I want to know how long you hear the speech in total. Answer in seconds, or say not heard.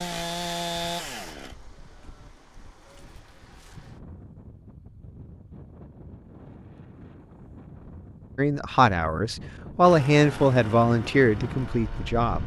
4 s.